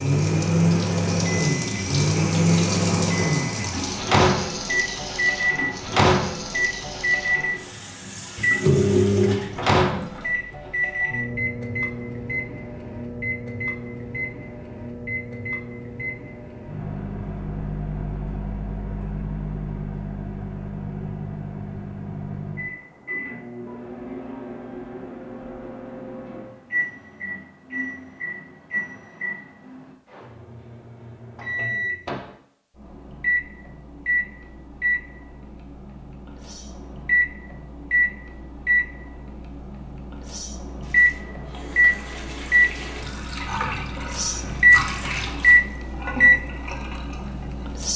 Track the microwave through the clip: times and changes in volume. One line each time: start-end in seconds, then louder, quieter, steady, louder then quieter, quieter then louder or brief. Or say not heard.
0.0-47.9 quieter then louder.